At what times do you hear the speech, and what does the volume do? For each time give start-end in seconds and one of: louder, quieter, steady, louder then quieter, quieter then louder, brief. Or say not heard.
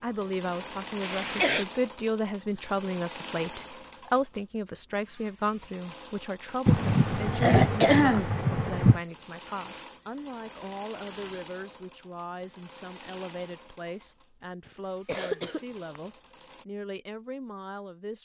0.0-18.2 quieter.